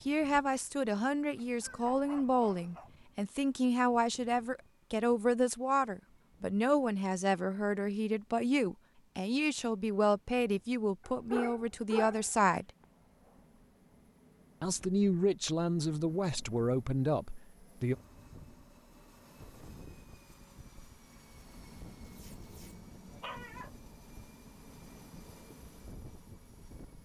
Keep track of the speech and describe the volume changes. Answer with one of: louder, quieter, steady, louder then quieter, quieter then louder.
steady.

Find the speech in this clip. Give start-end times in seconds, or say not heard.
0.1-12.7, 14.6-17.9.